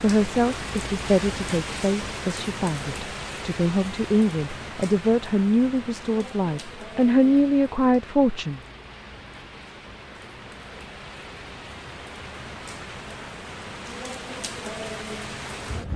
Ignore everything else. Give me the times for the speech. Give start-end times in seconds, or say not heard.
0.0-8.6.